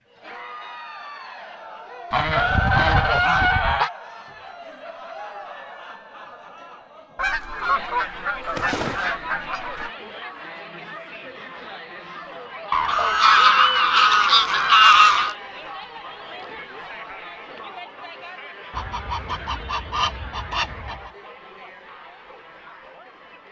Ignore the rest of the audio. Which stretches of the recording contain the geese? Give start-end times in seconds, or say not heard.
2.1-3.9, 7.2-9.9, 12.7-15.3, 18.7-21.1.